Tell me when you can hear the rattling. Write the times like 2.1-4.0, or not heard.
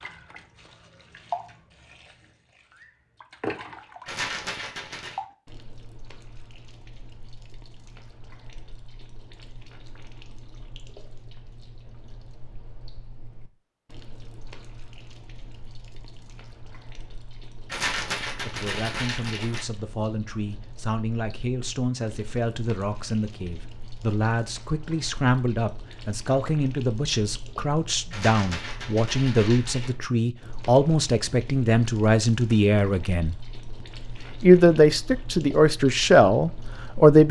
4.0-5.2, 17.7-19.6, 28.1-29.9.